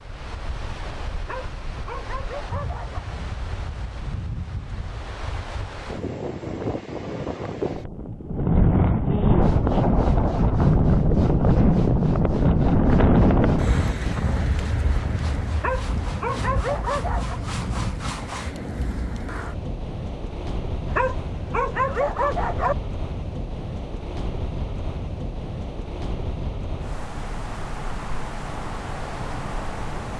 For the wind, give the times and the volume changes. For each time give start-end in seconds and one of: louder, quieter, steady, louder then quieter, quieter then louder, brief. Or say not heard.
0.0-30.1 louder then quieter.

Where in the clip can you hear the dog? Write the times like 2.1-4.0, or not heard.
1.2-3.0, 15.6-17.4, 20.9-22.8.